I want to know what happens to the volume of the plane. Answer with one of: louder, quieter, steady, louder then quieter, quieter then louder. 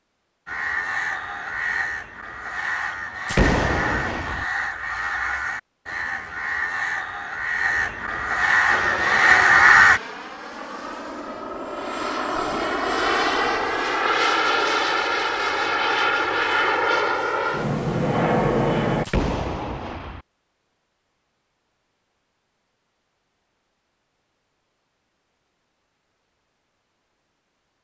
louder.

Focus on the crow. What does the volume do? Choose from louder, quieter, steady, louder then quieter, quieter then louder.
louder.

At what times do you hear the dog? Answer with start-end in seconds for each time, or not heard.
not heard.